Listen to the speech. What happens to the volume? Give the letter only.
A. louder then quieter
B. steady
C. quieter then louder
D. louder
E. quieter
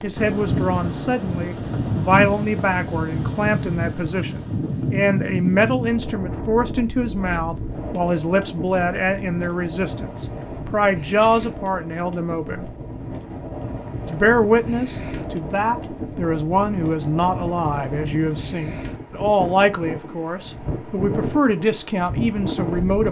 B.